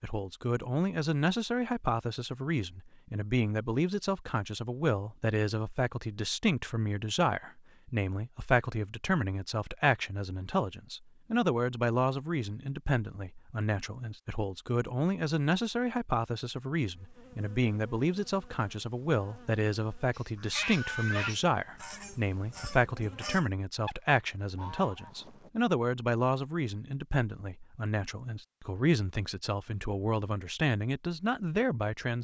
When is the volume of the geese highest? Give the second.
21 s.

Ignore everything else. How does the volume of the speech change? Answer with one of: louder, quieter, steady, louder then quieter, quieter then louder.
steady.